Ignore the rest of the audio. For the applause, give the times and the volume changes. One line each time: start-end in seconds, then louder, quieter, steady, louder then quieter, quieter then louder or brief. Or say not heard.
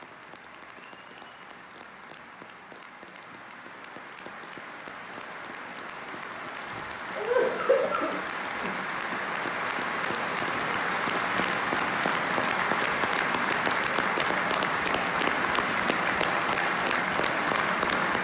0.0-18.1 louder.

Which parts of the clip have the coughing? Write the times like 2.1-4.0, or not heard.
7.2-8.7.